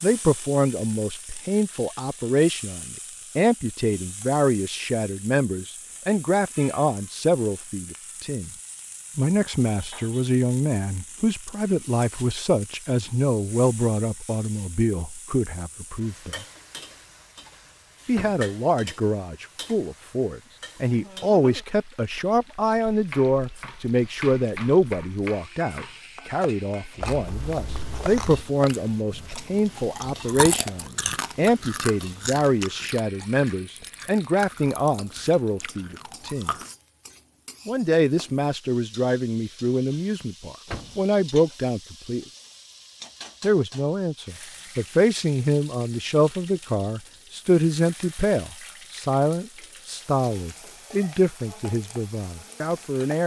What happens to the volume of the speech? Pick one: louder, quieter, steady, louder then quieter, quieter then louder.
steady.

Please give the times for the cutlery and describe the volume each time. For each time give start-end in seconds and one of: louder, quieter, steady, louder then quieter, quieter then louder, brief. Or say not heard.
not heard.